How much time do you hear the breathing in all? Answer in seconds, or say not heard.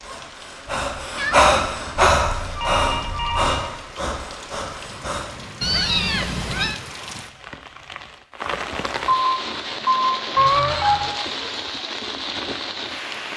5 s.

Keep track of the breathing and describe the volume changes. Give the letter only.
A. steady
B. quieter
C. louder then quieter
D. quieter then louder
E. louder
C.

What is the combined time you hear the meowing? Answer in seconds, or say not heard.
3 s.